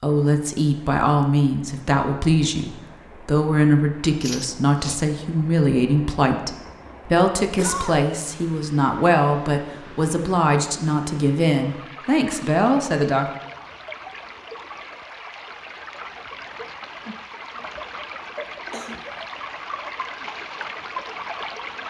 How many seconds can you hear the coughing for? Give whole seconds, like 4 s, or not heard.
2 s.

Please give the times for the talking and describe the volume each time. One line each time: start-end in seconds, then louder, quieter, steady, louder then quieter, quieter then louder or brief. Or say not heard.
0.0-13.3 steady.